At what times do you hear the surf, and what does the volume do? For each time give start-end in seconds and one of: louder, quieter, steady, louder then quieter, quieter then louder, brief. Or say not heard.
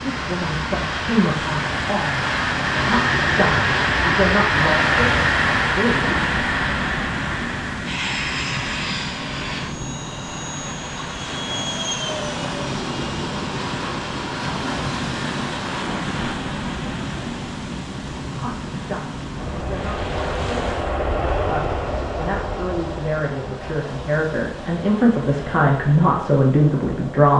0.0-27.3 quieter.